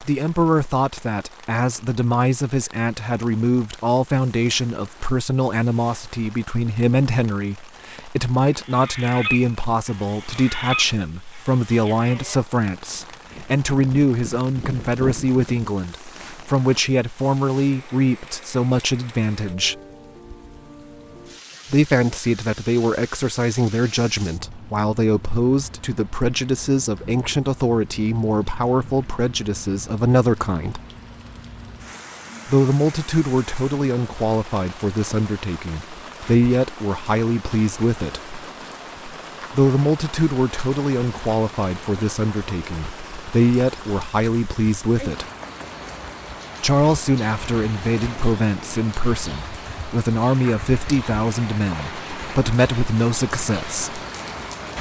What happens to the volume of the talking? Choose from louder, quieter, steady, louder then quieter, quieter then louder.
steady.